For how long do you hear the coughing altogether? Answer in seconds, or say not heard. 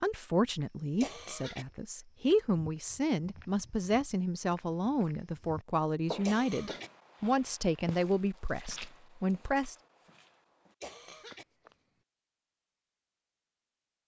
2 s.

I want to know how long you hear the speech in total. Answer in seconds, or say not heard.
10 s.